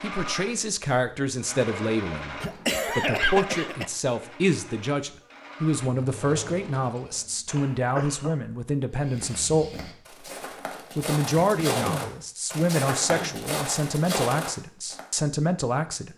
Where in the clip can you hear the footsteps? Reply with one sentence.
The footsteps can be heard from 9.0 to 15.0 s.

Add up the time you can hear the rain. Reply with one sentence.
The rain can't be heard in this clip.